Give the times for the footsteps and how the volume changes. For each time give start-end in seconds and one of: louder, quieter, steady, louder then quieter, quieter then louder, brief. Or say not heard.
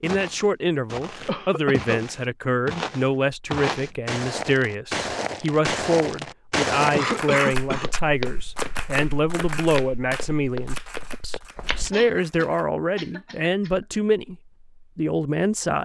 0.0-12.0 louder then quieter.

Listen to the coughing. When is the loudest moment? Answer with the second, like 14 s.
7 s.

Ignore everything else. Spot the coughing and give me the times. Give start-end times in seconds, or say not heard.
1.2-2.0, 7.0-7.9, 11.9-13.8.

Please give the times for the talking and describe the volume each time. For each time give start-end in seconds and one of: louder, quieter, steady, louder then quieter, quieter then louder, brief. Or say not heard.
0.0-15.8 steady.